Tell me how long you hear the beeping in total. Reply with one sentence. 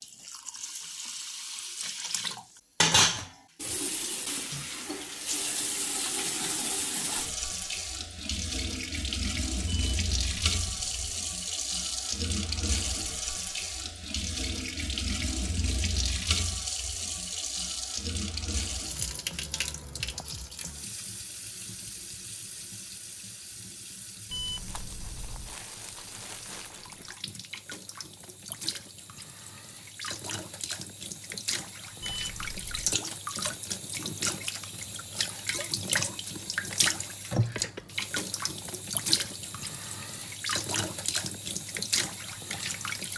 You can hear the beeping for 4 seconds altogether.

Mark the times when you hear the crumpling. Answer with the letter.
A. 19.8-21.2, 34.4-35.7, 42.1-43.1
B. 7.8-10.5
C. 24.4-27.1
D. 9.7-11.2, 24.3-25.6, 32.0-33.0
C.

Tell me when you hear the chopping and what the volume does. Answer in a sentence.
The chopping can't be heard in this clip.